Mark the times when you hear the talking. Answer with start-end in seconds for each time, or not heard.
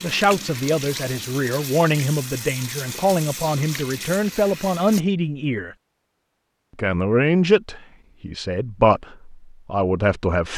0.0-5.8, 6.8-10.5.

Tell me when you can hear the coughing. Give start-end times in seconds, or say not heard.
not heard.